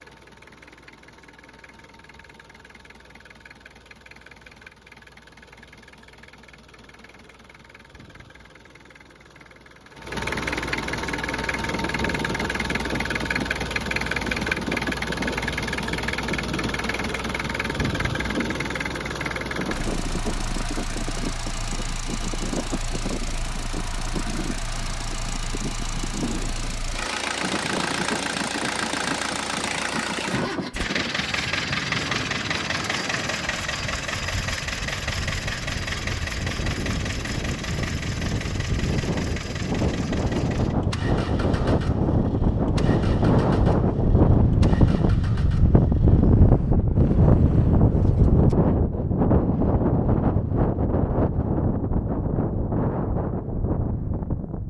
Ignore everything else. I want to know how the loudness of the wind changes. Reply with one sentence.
The loudness of the wind goes up.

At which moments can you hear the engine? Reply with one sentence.
The engine can be heard from 0.0 to 46.8 s.